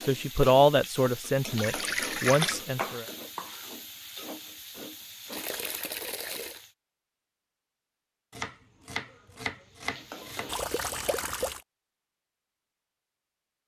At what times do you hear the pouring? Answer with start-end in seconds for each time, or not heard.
1.6-2.6, 5.3-6.6, 10.4-11.6.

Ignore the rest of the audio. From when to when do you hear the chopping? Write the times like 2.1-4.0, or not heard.
1.9-3.6, 8.3-10.5.